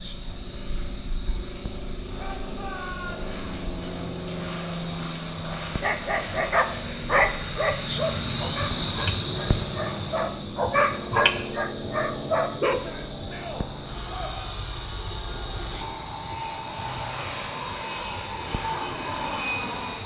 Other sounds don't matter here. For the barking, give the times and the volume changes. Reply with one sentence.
The barking can be heard from 5.7 to 12.8 s, getting quieter then louder.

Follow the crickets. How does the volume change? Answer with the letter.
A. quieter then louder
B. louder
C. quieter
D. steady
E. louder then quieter
E.